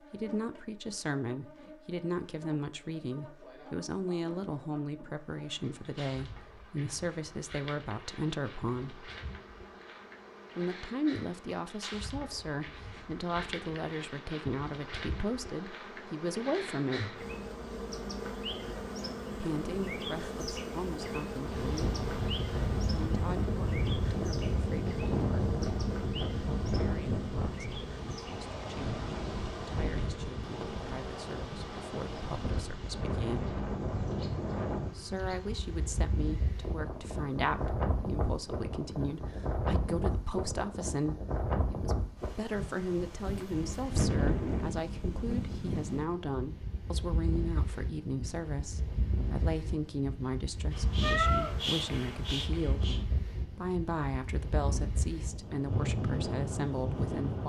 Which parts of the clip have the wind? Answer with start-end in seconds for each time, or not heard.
21.4-57.4.